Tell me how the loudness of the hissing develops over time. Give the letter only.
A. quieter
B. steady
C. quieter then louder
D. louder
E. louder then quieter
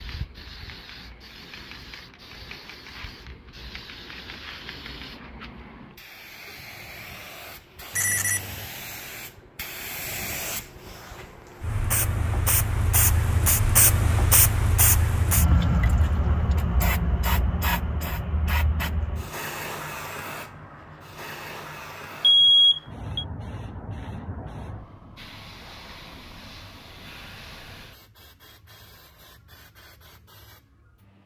E.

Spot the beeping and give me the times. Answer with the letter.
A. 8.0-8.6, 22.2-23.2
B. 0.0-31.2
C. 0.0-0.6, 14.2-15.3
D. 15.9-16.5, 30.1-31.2
A.